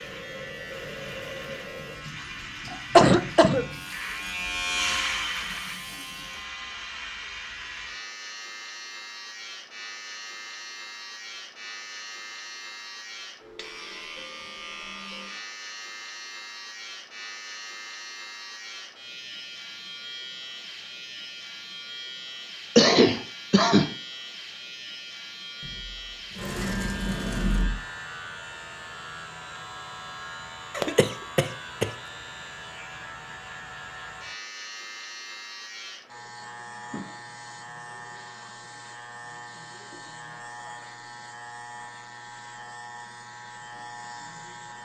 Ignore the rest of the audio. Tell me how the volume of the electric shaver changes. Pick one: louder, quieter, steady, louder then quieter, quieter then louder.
quieter.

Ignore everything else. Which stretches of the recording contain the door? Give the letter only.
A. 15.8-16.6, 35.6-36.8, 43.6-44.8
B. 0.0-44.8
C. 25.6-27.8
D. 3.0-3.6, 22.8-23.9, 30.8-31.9
C.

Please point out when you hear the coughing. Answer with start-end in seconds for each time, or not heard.
3.0-3.6, 22.8-23.9, 30.8-31.9.